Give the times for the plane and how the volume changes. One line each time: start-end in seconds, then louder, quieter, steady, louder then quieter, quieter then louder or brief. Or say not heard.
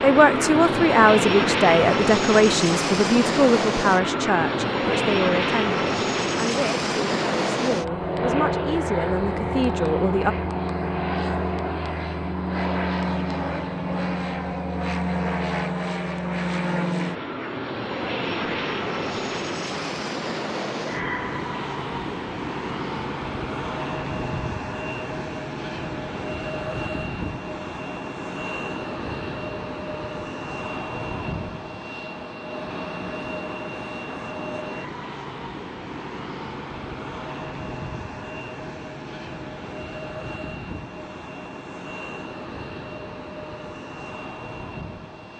0.0-45.3 quieter.